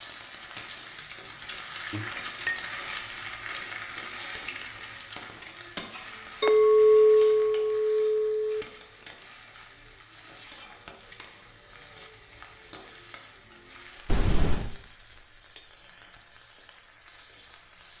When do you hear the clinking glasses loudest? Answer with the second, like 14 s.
7 s.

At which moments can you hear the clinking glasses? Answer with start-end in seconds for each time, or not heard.
1.9-2.6, 6.4-8.7, 14.1-14.7.